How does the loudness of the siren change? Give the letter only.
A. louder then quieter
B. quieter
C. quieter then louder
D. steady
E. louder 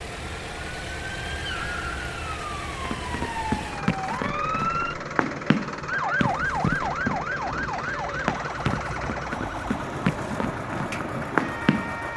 A.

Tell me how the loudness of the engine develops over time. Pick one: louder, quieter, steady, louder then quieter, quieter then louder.
steady.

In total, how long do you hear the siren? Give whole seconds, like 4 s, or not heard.
12 s.